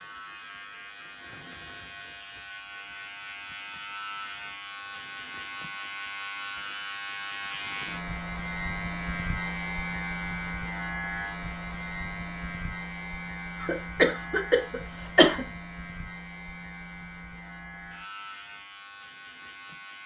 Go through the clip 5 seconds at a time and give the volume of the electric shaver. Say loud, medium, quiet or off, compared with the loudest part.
medium, loud, loud, medium.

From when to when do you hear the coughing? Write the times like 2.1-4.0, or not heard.
13.6-15.4.